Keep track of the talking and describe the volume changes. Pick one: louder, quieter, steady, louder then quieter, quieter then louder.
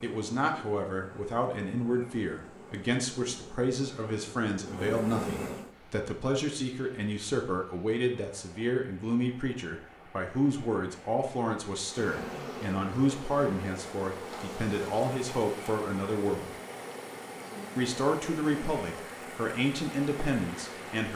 steady.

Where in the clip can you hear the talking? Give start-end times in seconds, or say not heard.
0.0-16.6, 17.8-21.1.